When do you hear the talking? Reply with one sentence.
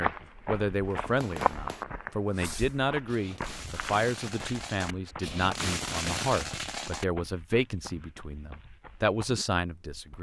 The talking can be heard from 0.0 to 10.1 s.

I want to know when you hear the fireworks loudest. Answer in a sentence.
The loudest moment of the fireworks is at 6 seconds.